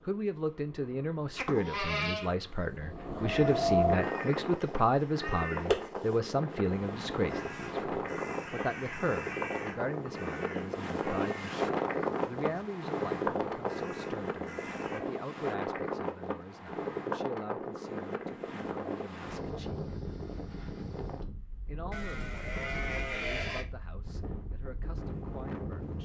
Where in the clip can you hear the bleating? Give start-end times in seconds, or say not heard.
1.4-2.4, 21.9-23.6.